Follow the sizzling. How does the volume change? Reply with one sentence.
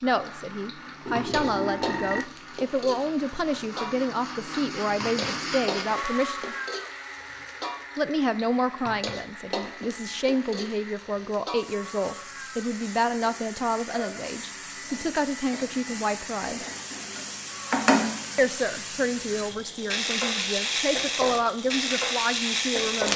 The volume of the sizzling goes up.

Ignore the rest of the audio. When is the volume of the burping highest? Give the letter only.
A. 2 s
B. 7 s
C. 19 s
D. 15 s
A.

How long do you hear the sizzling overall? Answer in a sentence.
The sizzling can be heard for 23 seconds in total.